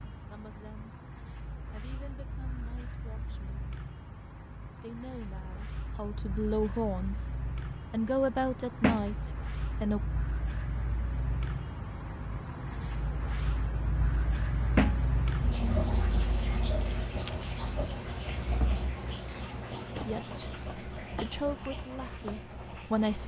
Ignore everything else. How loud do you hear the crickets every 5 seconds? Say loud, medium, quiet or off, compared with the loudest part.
quiet, medium, loud, loud, medium.